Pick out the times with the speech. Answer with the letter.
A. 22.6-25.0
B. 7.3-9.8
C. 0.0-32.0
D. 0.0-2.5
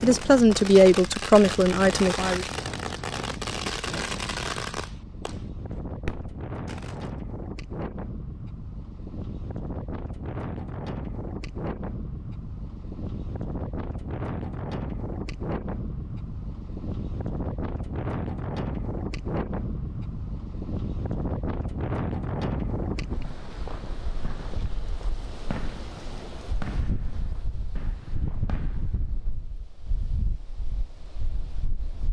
D.